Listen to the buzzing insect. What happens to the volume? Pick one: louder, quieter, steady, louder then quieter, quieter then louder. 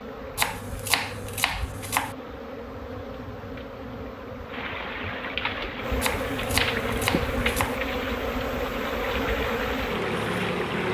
louder.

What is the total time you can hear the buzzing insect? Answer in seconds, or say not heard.
11 s.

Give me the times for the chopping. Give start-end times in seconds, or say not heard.
0.3-2.1, 6.0-7.8.